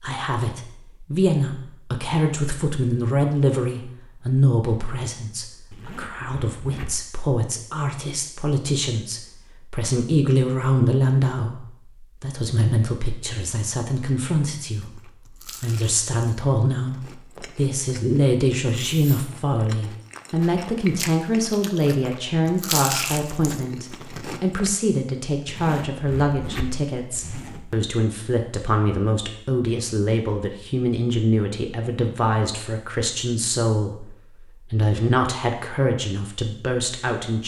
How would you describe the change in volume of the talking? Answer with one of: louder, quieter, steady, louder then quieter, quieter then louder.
steady.